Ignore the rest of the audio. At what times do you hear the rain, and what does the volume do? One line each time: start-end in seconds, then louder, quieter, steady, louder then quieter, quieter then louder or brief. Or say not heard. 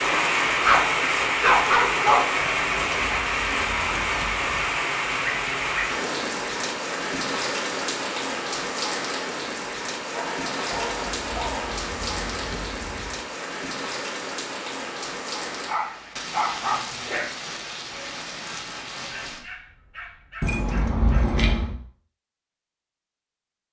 0.0-19.4 quieter.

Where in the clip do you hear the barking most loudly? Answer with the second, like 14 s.
2 s.